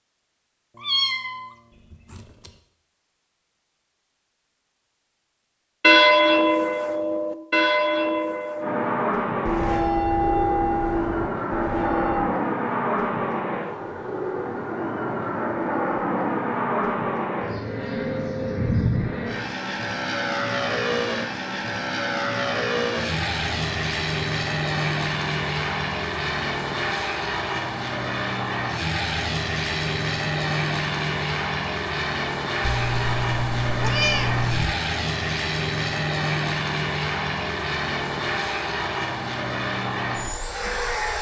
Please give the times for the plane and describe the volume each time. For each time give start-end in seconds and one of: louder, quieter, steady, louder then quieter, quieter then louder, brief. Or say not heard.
8.6-41.1 steady.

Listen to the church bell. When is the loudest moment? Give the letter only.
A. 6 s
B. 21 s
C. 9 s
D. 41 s
A.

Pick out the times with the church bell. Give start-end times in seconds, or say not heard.
5.8-12.2.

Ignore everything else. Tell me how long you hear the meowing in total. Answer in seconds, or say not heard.
4 s.